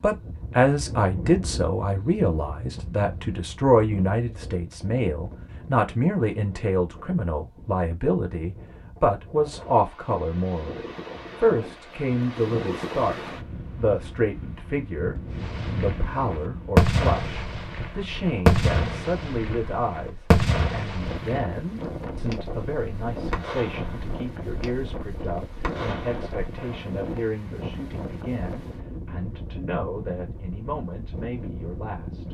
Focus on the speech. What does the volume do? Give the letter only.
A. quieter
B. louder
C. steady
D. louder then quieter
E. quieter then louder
A.